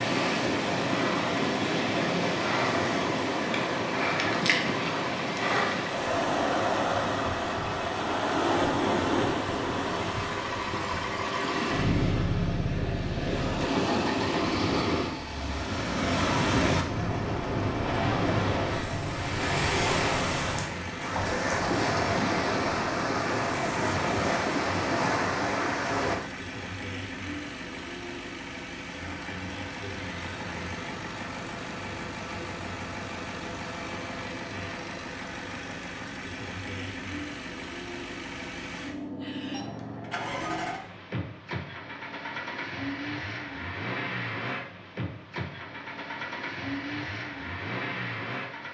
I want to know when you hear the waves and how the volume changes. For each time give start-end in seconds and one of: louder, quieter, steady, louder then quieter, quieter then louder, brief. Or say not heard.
0.0-26.2 steady.